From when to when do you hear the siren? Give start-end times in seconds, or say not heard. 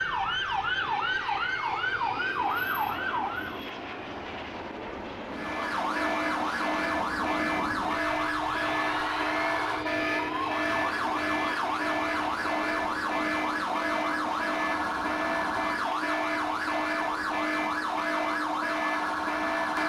0.0-3.6, 5.2-19.8.